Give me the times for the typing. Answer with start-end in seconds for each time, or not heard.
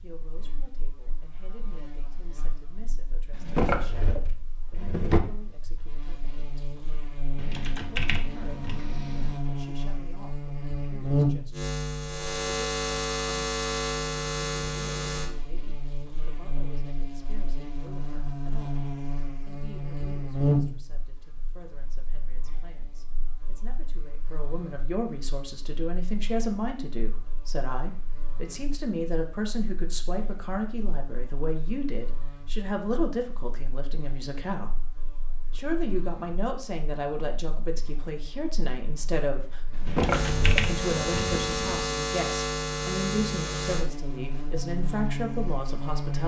7.3-9.4, 39.9-41.9.